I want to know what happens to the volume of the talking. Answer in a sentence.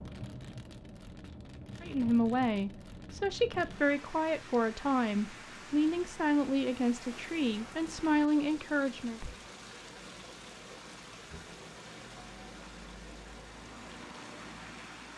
The volume of the talking stays about the same.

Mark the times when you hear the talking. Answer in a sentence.
The talking can be heard from 1.8 to 9.2 s.